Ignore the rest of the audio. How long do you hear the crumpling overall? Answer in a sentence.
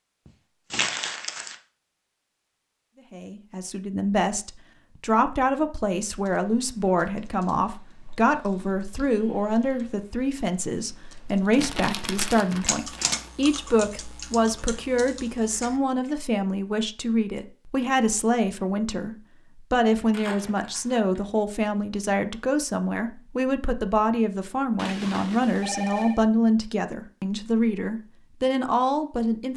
The crumpling can be heard for 4 seconds in total.